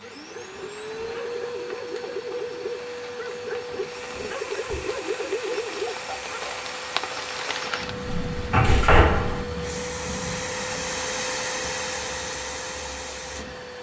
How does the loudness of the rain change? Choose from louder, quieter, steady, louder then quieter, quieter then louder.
louder then quieter.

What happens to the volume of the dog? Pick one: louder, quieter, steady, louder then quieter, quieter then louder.
louder.